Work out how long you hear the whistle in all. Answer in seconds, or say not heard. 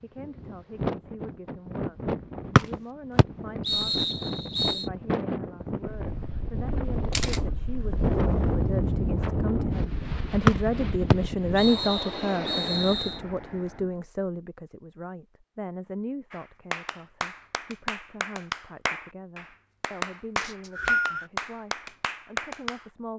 6 s.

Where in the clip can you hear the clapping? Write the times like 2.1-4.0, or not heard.
16.3-22.9.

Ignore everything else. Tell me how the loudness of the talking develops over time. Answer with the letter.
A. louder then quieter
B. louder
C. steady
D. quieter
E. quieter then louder
A.